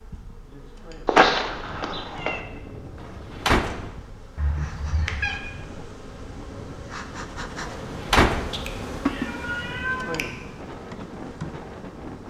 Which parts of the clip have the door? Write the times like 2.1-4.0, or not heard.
3.0-3.9, 7.7-8.6.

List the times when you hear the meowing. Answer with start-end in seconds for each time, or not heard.
1.1-2.4, 4.3-5.4, 8.5-10.2.